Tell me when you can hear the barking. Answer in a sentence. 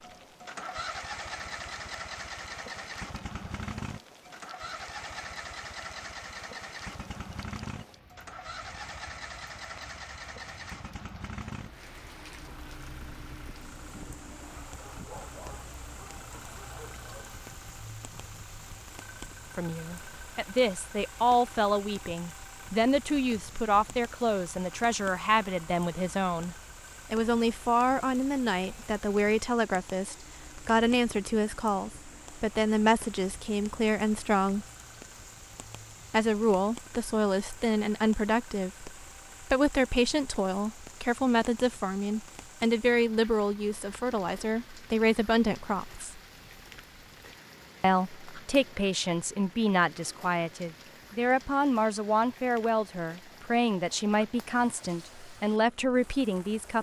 You can hear the barking from 14.7 to 17.4 s.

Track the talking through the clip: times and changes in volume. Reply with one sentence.
You can hear the talking from 19.6 to 34.6 s, at a steady volume; from 36.1 to 46.2 s, at a steady volume; and from 47.8 to 56.7 s, at a steady volume.